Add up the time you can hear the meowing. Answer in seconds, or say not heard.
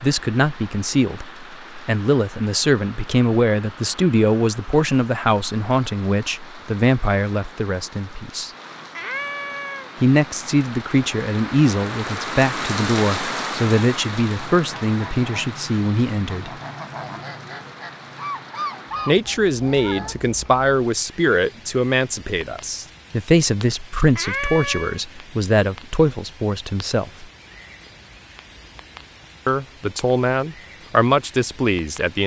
2 s.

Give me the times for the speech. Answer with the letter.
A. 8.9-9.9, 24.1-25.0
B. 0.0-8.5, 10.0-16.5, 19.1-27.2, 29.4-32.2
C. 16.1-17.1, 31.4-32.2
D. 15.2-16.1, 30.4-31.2
B.